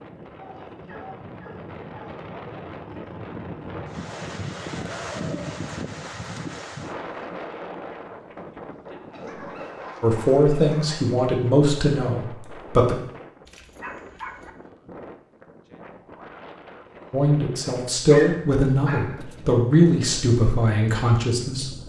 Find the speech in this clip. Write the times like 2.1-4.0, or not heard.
10.0-12.9, 17.1-21.7.